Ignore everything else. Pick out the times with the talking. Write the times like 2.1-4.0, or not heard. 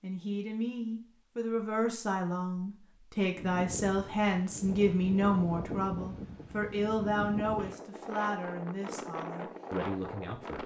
0.0-10.6.